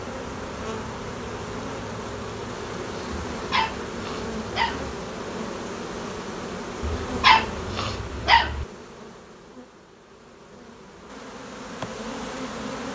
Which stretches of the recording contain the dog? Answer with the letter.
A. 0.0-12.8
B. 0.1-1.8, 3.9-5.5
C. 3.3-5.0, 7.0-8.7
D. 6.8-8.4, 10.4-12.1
C.